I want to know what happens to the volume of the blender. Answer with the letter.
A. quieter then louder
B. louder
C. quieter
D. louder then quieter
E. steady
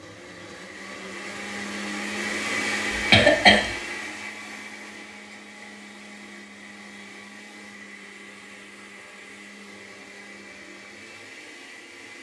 C.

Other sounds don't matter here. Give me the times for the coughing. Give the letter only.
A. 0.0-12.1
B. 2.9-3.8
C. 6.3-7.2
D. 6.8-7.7
B.